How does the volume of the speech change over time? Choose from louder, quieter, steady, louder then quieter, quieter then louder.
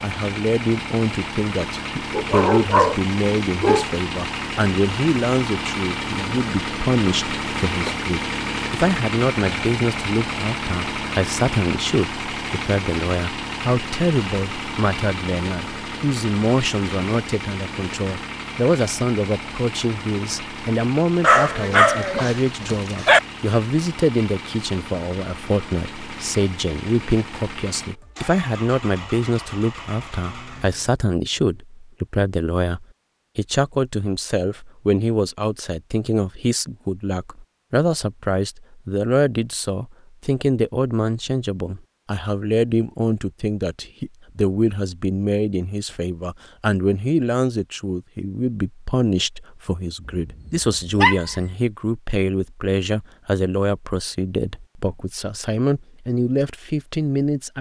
steady.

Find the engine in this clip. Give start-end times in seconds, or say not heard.
0.0-30.9.